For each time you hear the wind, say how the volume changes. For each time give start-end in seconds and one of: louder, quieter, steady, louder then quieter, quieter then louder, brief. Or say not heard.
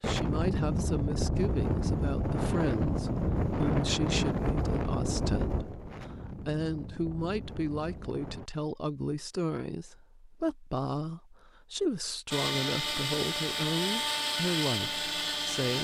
0.0-8.5 quieter.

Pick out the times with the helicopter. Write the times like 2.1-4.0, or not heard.
12.3-15.7.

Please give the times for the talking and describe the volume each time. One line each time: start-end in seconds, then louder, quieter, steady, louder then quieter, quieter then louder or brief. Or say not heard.
0.0-15.7 steady.